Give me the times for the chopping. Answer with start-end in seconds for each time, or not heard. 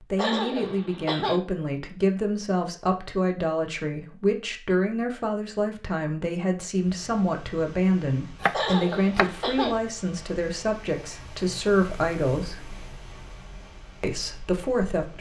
8.4-9.3.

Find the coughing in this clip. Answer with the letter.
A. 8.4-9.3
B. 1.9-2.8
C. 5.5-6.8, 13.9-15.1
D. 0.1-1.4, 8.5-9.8
D.